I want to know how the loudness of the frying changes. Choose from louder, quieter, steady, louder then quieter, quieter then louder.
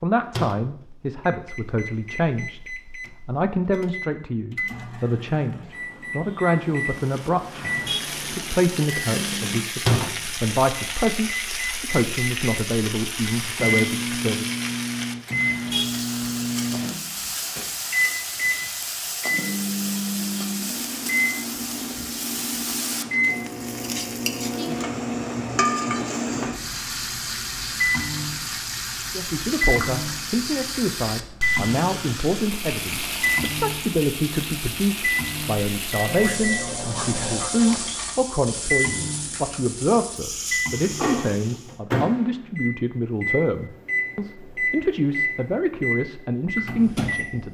steady.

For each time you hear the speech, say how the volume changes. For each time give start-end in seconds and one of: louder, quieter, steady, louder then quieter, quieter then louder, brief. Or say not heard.
0.0-2.6 brief
3.2-14.4 steady
29.1-47.4 steady.